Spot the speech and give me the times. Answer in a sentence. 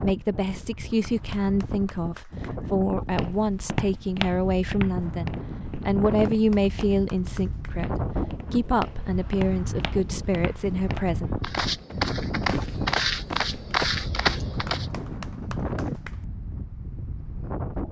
The speech can be heard from 0.0 to 11.3 s.